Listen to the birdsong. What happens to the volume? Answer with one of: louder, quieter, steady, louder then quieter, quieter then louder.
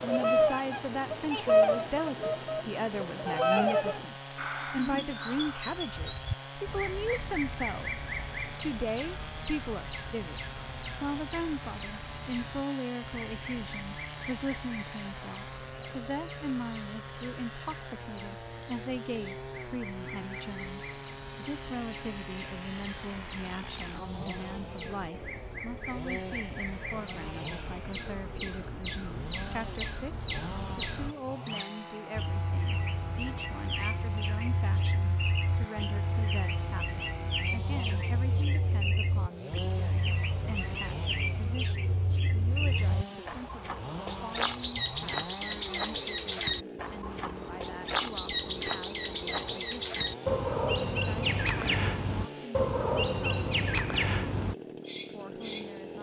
quieter then louder.